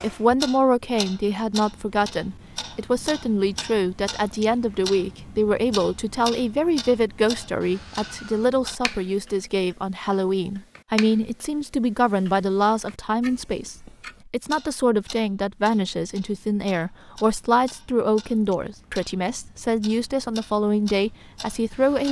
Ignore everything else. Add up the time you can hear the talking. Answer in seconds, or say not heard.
22 s.